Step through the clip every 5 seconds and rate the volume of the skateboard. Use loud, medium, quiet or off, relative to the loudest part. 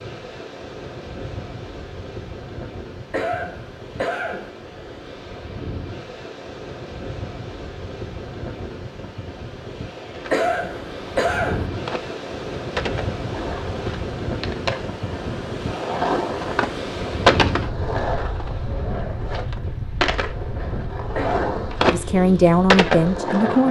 off, off, medium, loud, loud.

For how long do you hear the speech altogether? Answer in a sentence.
The speech can be heard for 2 seconds in total.